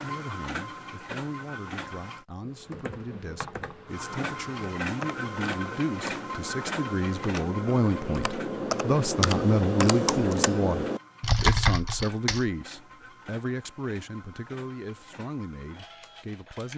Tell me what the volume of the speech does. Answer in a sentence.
The loudness of the speech goes up, then down.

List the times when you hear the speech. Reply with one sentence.
You can hear the speech from 0.0 to 16.7 s.